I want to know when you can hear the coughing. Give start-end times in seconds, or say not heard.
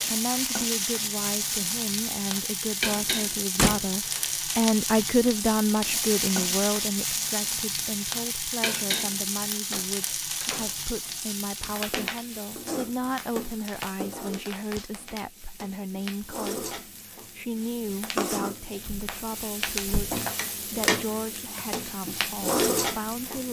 not heard.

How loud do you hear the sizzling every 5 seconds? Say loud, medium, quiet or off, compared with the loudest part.
loud, loud, medium, medium, loud.